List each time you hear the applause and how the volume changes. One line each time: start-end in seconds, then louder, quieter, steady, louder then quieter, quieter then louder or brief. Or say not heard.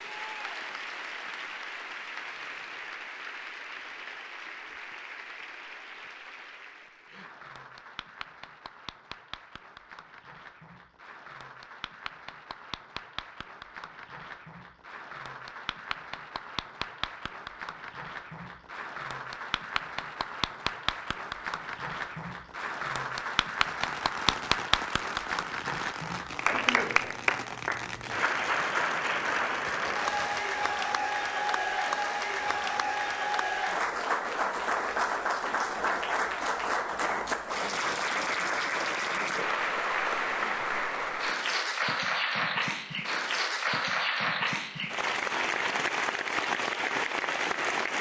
0.0-47.9 louder.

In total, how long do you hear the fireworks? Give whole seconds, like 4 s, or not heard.
7 s.